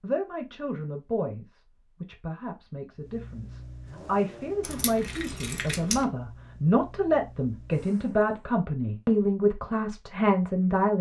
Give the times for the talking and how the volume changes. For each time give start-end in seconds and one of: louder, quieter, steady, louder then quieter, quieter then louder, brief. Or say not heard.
0.0-10.9 louder.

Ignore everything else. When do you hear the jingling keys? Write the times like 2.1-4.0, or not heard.
4.6-6.0.